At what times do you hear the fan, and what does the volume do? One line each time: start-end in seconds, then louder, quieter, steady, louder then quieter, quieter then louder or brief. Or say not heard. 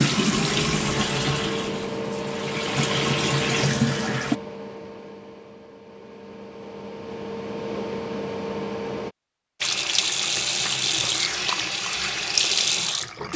0.0-9.2 quieter then louder.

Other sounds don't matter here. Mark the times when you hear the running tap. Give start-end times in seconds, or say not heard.
0.0-4.4, 9.6-13.3.